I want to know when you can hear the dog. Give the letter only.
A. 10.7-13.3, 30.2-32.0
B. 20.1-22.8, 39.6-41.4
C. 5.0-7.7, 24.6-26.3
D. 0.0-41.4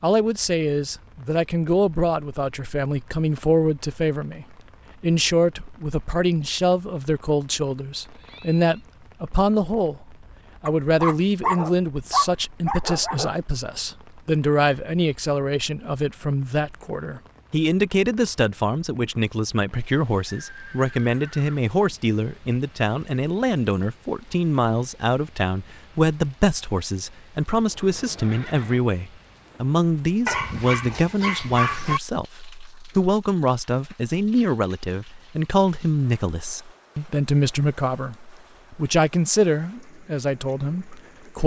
A.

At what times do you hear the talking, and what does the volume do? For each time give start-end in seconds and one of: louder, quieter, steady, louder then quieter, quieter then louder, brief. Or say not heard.
0.0-41.4 steady.